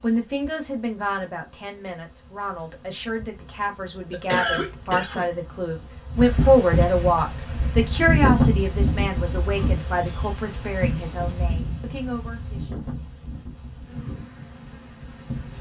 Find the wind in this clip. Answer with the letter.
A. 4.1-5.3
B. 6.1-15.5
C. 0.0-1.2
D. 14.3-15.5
B.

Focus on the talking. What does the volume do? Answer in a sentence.
The volume of the talking goes up, then down.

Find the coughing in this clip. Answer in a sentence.
The coughing can be heard from 4.1 to 5.3 s.